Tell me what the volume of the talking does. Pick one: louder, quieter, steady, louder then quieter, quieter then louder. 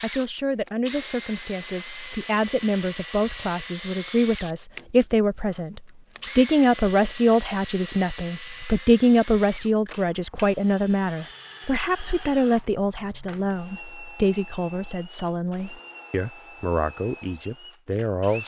louder then quieter.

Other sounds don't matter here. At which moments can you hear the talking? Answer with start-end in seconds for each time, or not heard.
0.0-18.4.